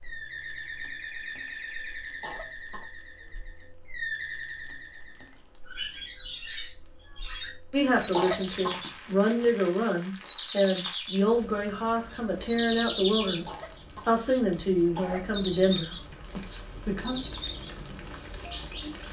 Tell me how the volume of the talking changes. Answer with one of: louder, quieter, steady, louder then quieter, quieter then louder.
steady.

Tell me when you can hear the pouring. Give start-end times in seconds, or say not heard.
not heard.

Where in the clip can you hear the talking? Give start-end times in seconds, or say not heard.
7.7-17.2.